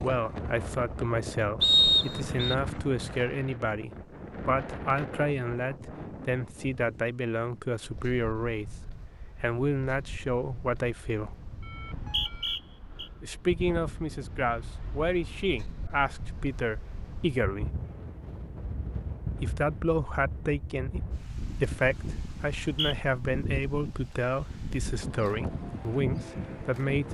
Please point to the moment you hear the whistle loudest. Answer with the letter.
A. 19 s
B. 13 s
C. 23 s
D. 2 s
D.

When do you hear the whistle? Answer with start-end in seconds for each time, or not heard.
1.6-2.5, 11.8-13.1, 22.4-22.9.